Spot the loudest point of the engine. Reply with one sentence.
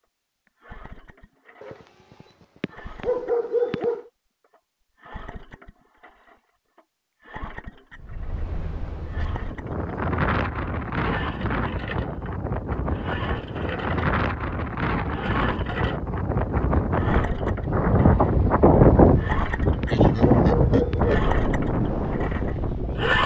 The volume of the engine peaks at 23 seconds.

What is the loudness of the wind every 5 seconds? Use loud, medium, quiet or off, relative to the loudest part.
off, quiet, medium, loud, loud.